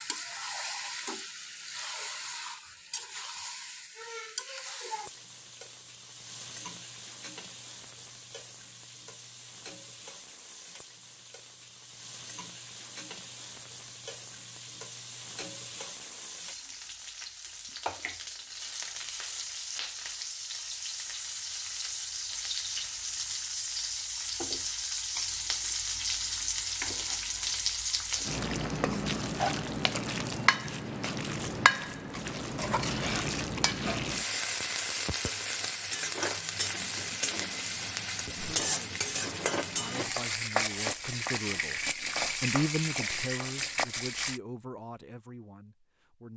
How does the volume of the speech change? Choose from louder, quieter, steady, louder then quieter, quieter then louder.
louder then quieter.